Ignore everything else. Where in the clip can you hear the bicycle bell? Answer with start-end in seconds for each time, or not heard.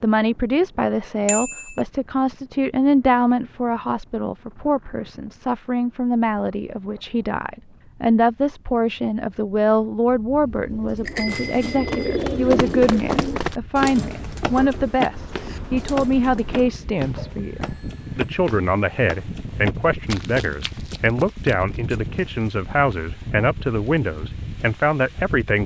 1.2-1.8, 11.1-12.2, 17.1-18.2.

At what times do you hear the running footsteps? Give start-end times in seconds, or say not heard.
11.2-22.3.